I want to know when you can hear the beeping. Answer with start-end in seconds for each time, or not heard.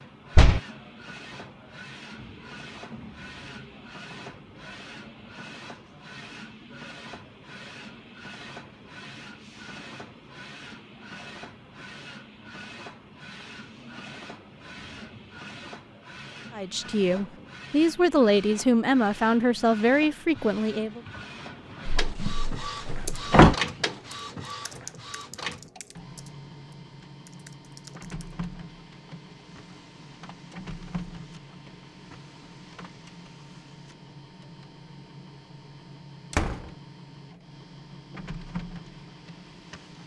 not heard.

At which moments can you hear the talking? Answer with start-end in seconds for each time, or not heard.
16.5-21.0.